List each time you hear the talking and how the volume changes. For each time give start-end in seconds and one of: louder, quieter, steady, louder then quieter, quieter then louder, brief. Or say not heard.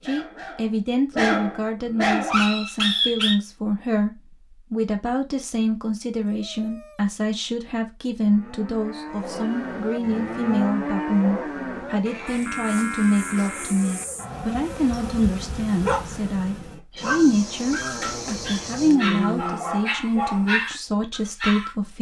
0.0-21.9 steady.